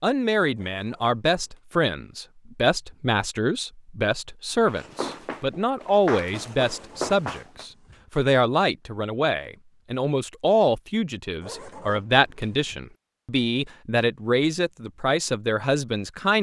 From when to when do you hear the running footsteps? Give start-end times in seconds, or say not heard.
4.7-7.7.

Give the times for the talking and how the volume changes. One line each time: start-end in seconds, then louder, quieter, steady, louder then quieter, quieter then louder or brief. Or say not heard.
0.0-16.3 steady.